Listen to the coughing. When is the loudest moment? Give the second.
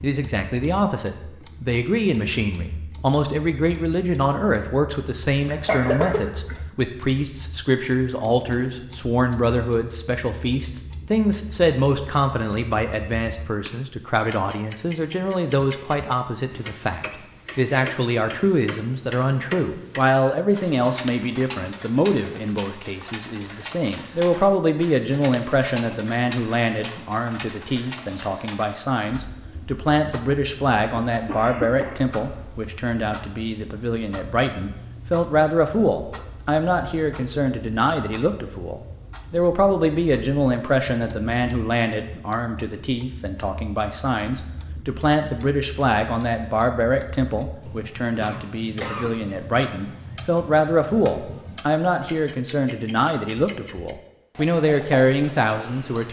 6 s.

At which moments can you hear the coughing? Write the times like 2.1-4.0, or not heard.
5.3-6.5, 30.9-32.1, 48.2-49.1.